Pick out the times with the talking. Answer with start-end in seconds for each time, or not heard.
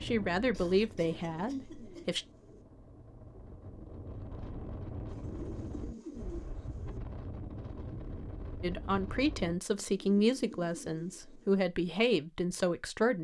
0.0-2.2, 8.6-13.1.